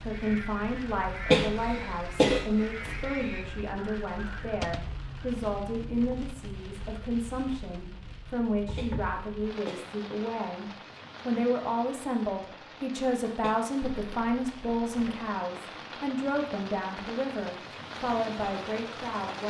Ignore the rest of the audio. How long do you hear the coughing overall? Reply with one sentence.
You can hear the coughing for 3 seconds altogether.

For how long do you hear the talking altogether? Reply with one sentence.
You can hear the talking for 19 seconds altogether.